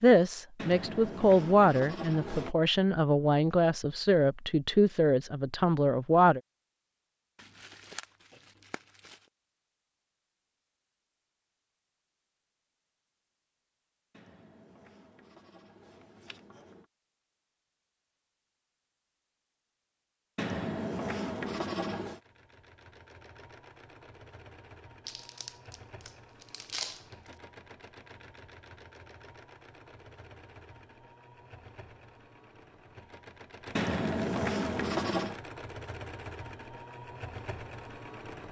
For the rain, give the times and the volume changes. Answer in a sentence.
You can't hear the rain here.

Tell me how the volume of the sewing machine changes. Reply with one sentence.
The volume of the sewing machine goes up.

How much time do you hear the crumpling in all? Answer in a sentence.
You can hear the crumpling for 4 seconds altogether.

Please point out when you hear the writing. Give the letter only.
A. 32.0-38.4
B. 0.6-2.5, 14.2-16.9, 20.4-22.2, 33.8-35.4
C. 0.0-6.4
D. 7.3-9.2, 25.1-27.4
B.